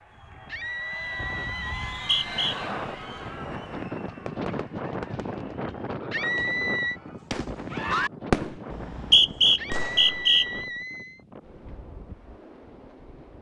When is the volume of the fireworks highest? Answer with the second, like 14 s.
8 s.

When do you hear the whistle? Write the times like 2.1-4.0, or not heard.
1.9-2.5, 8.7-10.4.